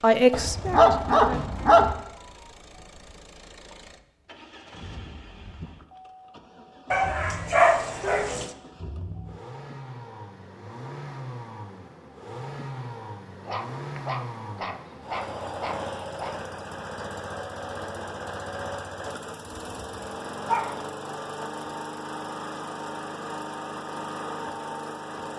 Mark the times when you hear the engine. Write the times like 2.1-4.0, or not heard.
0.0-25.3.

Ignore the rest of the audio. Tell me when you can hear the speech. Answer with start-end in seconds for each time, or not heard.
0.0-1.6.